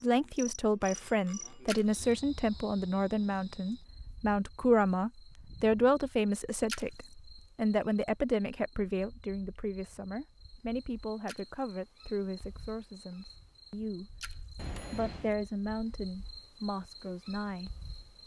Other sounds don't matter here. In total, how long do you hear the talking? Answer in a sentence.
You can hear the talking for 17 seconds altogether.